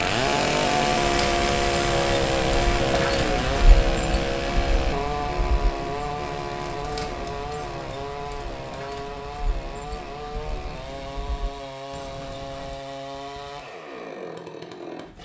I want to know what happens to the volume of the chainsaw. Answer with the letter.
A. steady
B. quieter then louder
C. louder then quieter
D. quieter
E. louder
D.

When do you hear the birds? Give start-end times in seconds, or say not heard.
0.0-12.8.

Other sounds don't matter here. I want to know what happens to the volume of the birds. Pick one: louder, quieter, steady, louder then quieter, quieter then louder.
quieter.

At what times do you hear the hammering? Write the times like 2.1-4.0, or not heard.
not heard.